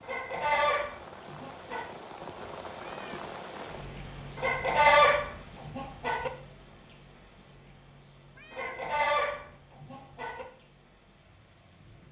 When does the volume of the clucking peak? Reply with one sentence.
The loudest moment of the clucking is at 5 seconds.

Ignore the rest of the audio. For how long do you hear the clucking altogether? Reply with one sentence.
You can hear the clucking for 6 seconds altogether.